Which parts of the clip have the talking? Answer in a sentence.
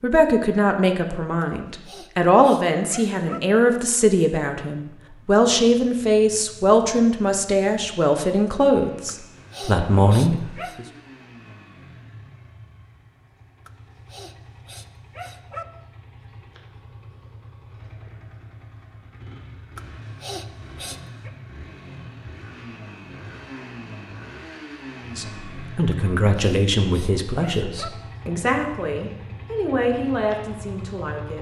The talking can be heard from 0.0 to 10.8 s and from 25.1 to 31.3 s.